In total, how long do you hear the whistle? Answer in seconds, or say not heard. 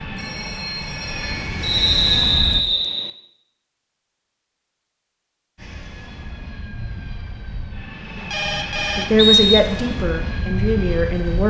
2 s.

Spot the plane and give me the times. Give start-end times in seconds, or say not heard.
0.0-2.6, 5.5-11.4.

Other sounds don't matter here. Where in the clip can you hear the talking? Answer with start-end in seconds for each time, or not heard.
8.9-11.4.